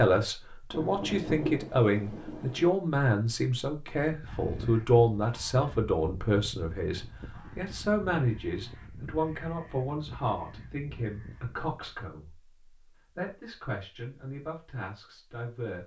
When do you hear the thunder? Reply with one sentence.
The thunder can be heard from 0.7 to 2.7 s.